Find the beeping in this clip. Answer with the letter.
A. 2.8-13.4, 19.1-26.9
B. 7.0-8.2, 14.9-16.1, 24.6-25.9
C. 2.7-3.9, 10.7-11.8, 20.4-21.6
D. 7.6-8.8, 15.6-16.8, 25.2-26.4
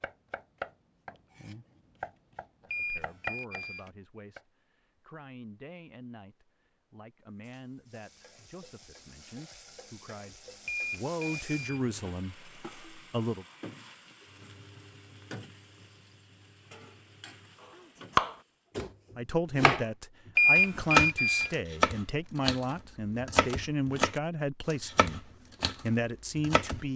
C.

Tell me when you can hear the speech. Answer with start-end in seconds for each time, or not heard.
2.8-13.4, 19.1-26.9.